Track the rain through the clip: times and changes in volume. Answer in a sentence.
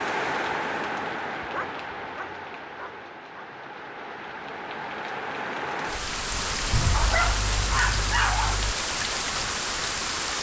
The rain can be heard from 0.0 to 10.3 s, getting quieter then louder.